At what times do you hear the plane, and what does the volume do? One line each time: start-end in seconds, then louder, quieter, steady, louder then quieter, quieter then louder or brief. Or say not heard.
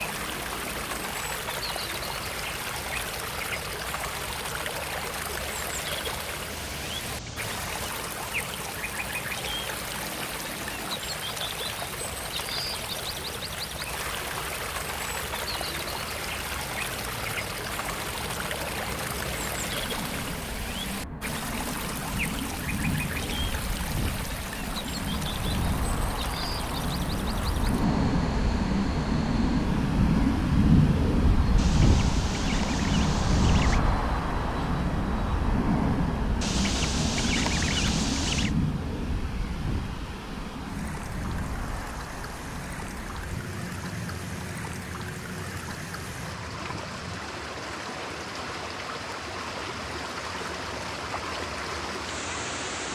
0.0-52.8 louder then quieter.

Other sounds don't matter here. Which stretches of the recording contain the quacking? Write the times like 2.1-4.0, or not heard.
6.5-8.0, 31.6-33.8, 36.4-38.5.